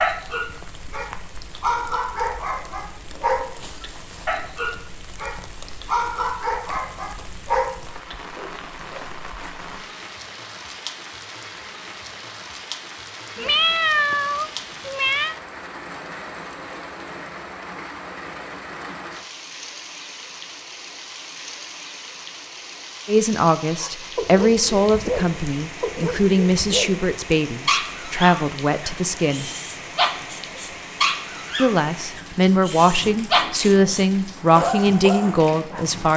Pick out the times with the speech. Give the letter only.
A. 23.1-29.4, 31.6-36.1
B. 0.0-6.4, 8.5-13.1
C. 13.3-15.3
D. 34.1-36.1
A.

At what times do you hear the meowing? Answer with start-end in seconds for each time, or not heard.
13.3-15.3.